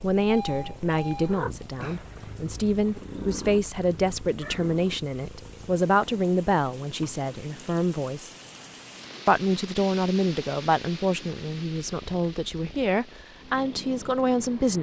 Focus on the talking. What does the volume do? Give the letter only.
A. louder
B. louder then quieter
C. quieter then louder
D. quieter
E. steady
E.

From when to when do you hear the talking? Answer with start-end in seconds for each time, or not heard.
0.0-8.3, 9.2-14.7.